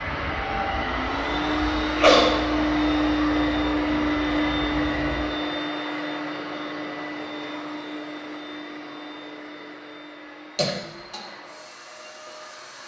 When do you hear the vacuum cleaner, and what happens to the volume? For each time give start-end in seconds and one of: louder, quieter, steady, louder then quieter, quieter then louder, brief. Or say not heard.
0.0-12.8 quieter.